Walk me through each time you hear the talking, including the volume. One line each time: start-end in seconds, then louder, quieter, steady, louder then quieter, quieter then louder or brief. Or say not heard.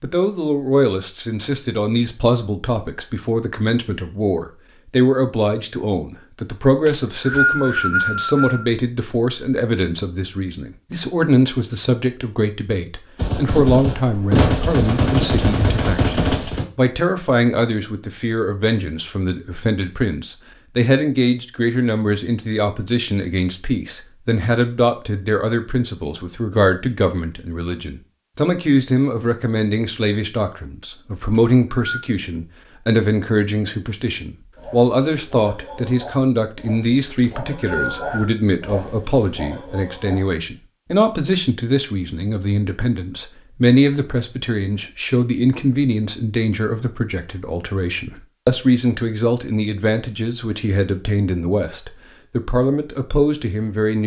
0.0-54.0 steady.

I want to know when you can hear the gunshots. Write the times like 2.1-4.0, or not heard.
13.2-16.6.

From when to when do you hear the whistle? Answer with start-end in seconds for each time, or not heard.
6.8-8.7, 31.3-32.0, 37.2-38.4.